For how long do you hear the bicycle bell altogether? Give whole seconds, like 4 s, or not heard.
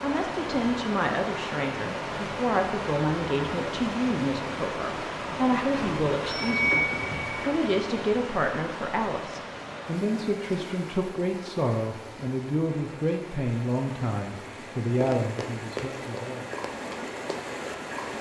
2 s.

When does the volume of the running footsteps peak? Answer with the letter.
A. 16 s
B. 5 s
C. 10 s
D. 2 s
A.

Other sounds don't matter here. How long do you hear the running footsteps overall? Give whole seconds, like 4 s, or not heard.
3 s.